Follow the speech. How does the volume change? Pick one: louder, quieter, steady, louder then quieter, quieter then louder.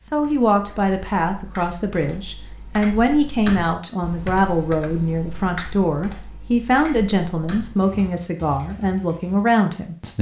steady.